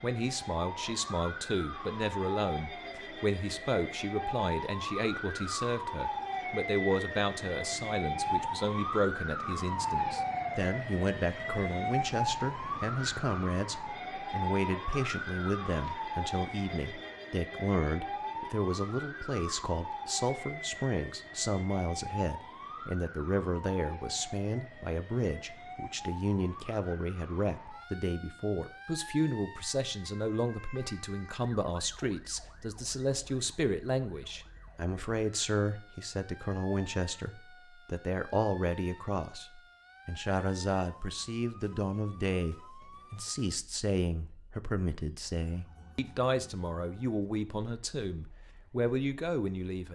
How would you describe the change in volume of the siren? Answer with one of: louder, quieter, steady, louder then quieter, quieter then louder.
quieter.